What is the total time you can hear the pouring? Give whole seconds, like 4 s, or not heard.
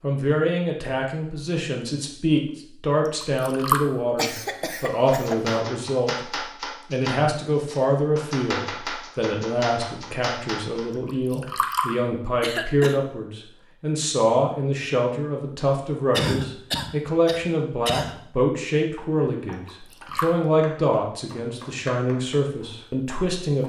2 s.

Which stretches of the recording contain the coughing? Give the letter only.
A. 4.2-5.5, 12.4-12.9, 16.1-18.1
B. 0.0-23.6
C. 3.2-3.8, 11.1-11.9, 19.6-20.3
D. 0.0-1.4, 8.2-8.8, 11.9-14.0
A.